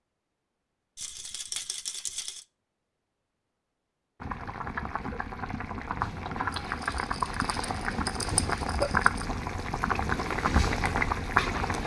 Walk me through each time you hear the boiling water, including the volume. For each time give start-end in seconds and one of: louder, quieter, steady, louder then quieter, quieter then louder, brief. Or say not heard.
4.2-11.8 louder.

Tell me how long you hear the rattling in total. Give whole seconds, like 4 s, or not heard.
4 s.